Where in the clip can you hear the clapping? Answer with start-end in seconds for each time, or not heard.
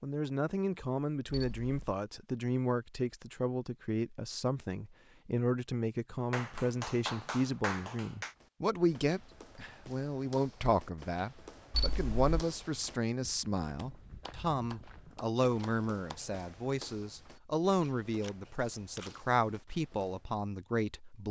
6.3-8.3, 13.8-16.2.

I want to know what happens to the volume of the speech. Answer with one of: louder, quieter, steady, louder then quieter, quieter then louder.
steady.